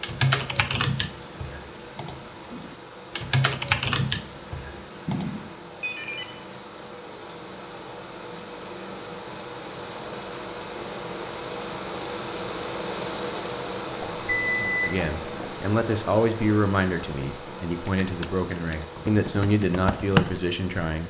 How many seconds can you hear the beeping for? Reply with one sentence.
The beeping can be heard for 3 seconds in total.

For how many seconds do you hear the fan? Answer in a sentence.
You can hear the fan for 21 seconds altogether.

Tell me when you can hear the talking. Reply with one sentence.
You can hear the talking from 14.8 to 21.0 s.